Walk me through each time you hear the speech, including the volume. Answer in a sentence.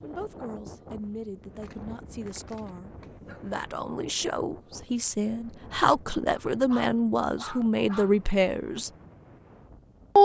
You can hear the speech from 0.0 to 8.9 s, getting louder.